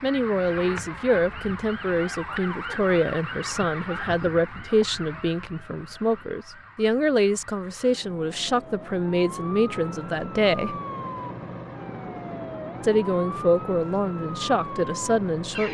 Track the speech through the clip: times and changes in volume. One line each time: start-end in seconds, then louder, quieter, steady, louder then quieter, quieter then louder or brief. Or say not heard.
0.0-10.8 steady
12.8-15.6 brief.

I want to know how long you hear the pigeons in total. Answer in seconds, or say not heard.
not heard.